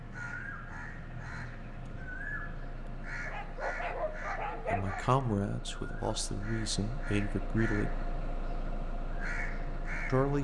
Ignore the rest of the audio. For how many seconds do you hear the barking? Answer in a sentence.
The barking can be heard for 2 seconds in total.